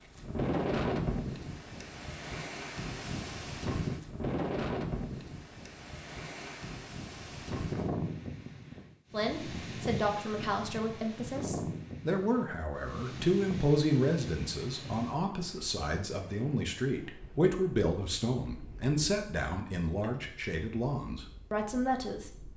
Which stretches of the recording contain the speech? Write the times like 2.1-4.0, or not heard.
9.1-22.5.